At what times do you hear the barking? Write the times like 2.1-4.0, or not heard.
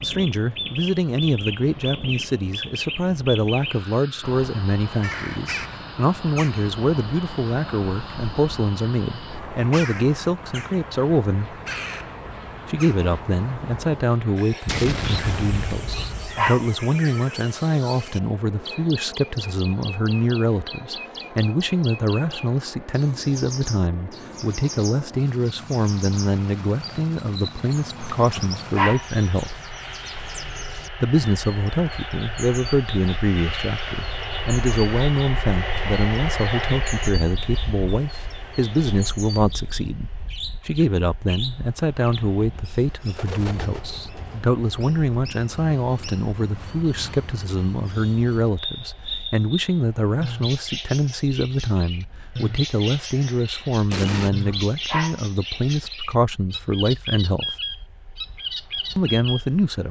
15.8-16.7, 28.0-29.1, 54.4-55.2.